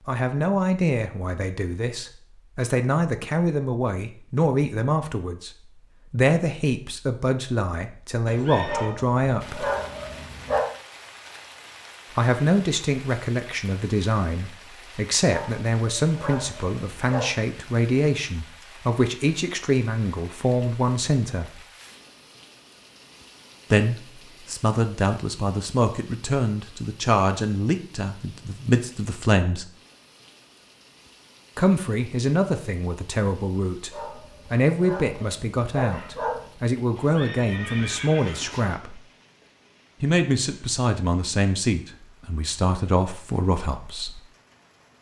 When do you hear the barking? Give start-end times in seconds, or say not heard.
8.7-10.7, 15.2-17.4, 33.9-36.5.